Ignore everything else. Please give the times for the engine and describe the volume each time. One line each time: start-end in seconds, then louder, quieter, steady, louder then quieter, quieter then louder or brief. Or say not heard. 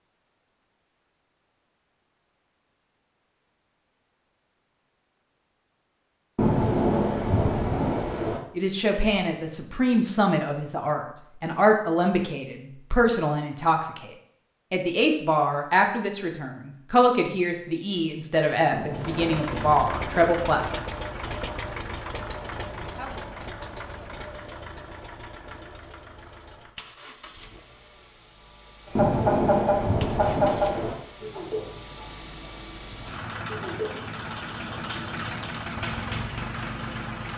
18.9-37.3 quieter then louder.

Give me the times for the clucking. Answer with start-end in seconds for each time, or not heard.
28.9-35.5.